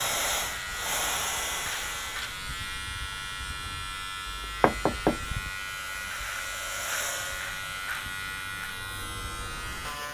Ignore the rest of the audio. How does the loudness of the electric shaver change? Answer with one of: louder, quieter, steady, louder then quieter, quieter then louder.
steady.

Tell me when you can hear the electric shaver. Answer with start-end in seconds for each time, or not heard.
0.0-10.0.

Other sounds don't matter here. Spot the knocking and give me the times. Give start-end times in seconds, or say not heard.
4.2-5.3.